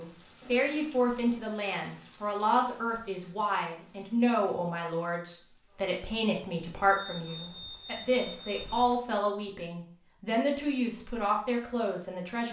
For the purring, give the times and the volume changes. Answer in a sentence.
The purring can't be heard in this clip.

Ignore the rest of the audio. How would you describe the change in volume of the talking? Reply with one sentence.
The loudness of the talking stays about the same.